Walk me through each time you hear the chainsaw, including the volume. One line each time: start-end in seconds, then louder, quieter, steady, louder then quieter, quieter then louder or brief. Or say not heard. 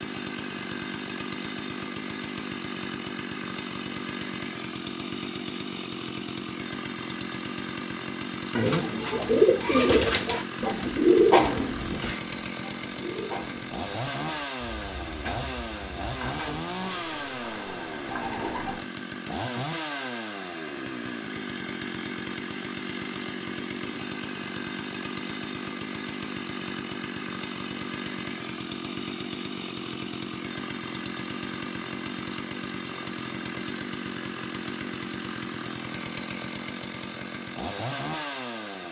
0.0-38.8 steady.